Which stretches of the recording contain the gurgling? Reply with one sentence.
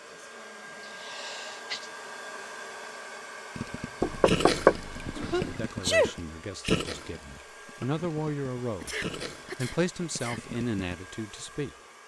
The gurgling can be heard from 3.5 to 10.8 s.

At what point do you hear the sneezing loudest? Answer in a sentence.
The volume of the sneezing peaks at 6 seconds.